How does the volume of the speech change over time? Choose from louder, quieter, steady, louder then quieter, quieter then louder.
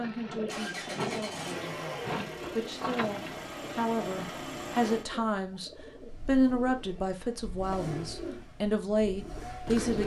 louder.